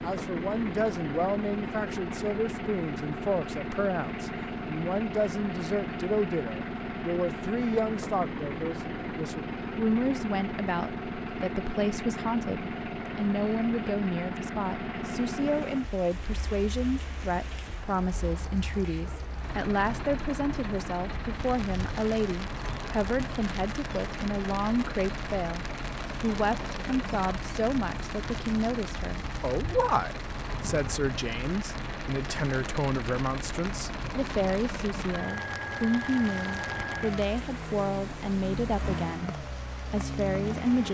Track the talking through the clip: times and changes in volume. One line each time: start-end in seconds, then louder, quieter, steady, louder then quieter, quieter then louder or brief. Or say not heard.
0.0-40.8 steady.